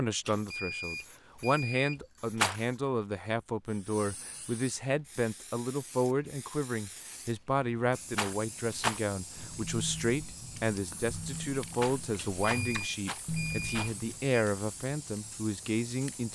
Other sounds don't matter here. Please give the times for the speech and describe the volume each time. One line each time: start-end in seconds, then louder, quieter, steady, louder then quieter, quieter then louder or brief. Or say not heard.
0.0-16.2 steady.